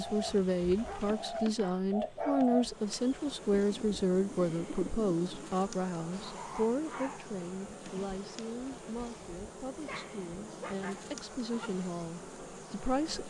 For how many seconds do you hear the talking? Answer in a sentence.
The talking can be heard for 13 seconds in total.